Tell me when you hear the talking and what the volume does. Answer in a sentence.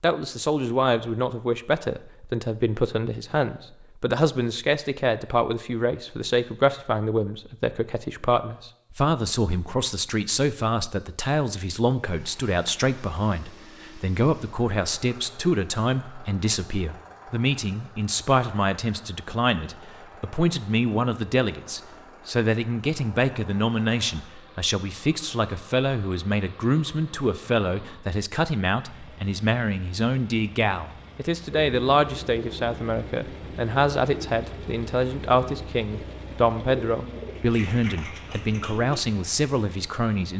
The talking can be heard from 0.0 to 40.3 s, at a steady volume.